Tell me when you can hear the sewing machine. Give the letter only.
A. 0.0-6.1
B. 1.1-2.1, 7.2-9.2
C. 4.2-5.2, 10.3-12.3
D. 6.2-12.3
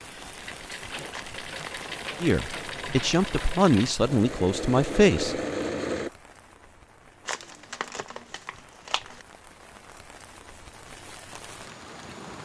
A.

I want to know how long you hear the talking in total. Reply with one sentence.
The talking can be heard for 3 seconds in total.